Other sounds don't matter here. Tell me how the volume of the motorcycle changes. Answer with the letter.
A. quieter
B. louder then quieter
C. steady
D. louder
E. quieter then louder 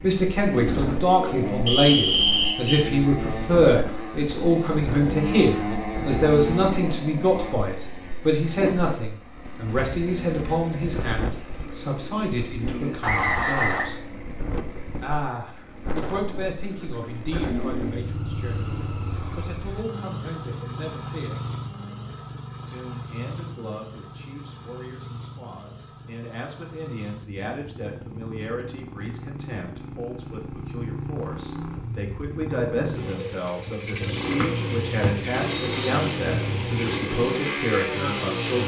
E.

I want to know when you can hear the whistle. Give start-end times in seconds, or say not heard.
1.6-2.9, 13.0-13.9, 34.4-35.9.